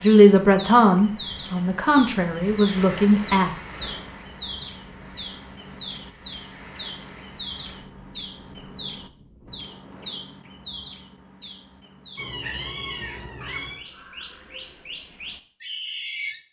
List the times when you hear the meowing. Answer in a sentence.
You can hear the meowing from 12.2 to 13.8 s.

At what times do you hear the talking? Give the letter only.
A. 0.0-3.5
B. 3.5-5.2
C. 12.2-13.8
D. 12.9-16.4
A.